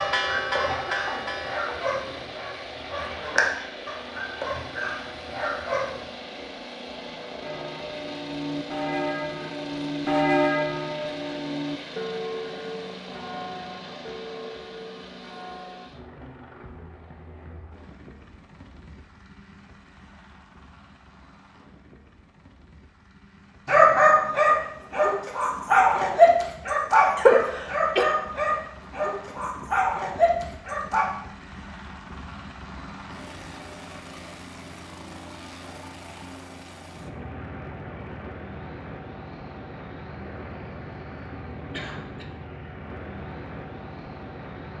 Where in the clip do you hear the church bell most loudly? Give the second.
10 s.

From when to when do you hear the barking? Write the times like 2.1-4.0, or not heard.
0.0-6.0, 23.6-31.1.